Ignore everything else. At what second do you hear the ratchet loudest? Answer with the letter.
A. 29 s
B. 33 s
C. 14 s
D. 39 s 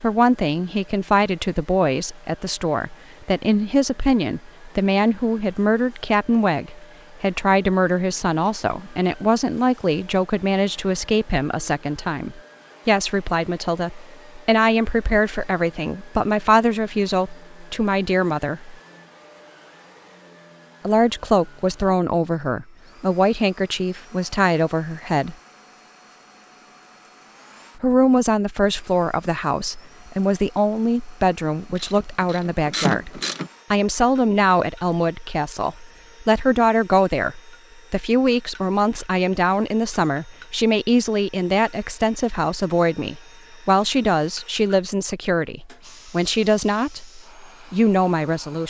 B.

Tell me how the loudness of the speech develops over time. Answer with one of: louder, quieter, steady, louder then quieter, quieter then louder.
steady.